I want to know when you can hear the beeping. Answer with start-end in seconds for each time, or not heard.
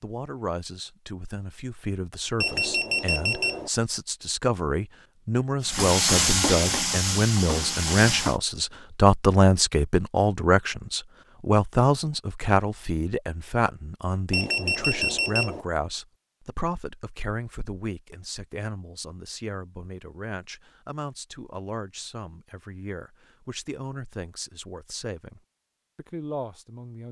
2.4-3.7, 14.3-15.7.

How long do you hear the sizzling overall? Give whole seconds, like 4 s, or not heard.
3 s.